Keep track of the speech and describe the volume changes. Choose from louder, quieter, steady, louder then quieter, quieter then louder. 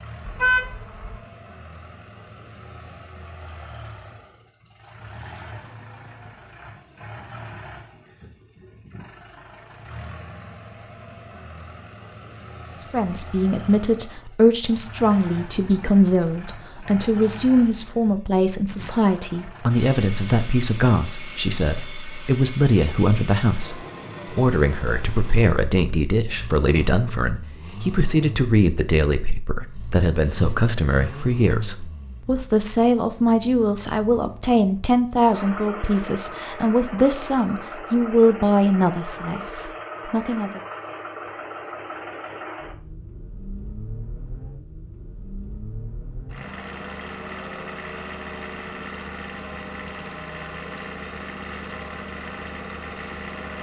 steady.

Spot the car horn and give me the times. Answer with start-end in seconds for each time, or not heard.
0.2-1.1.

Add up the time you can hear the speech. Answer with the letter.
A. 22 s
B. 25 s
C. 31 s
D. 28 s
D.